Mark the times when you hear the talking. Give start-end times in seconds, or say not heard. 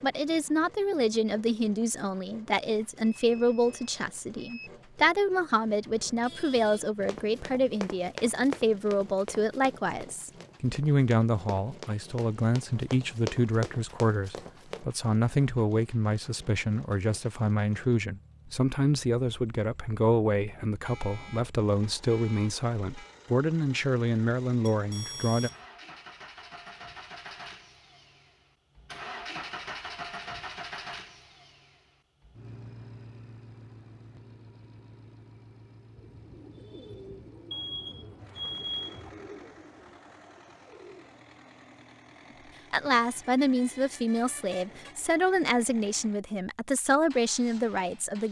0.0-25.5, 42.7-48.2.